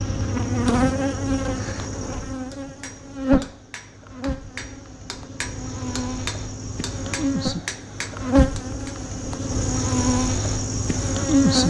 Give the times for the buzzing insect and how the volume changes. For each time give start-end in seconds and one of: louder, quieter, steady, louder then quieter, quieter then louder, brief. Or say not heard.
0.0-11.6 quieter then louder.